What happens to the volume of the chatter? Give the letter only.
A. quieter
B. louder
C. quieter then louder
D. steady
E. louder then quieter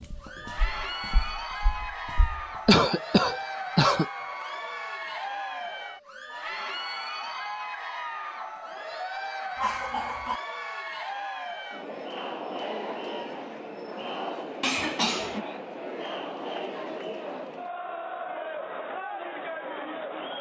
D.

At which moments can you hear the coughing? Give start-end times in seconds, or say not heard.
2.6-4.0, 9.6-10.4, 14.6-15.4.